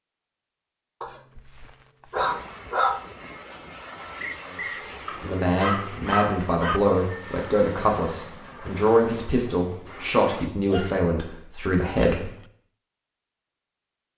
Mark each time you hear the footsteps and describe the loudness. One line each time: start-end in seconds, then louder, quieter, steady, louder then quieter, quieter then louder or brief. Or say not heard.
not heard.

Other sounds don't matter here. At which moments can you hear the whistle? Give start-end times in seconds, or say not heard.
4.2-4.8.